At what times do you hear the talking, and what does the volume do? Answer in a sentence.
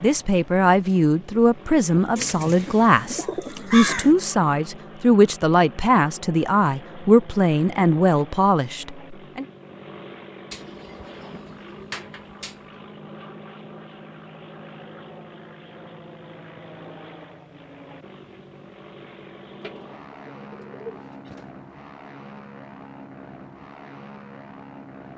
The talking can be heard from 0.0 to 9.4 s, at a steady volume.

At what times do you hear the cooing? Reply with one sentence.
The cooing can be heard from 2.1 to 4.2 s, from 10.5 to 12.7 s and from 19.6 to 21.4 s.